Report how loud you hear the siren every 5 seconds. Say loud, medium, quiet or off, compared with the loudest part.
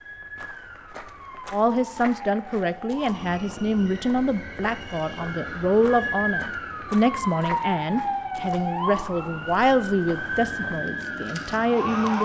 medium, loud, loud.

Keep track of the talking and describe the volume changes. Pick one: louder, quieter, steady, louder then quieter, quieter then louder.
steady.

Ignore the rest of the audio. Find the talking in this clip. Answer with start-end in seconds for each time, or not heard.
1.5-12.2.